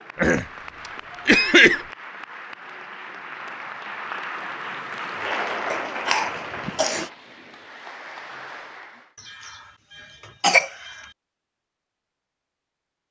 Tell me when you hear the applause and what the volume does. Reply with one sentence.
You can hear the applause from 0.0 to 9.2 s, getting louder then quieter.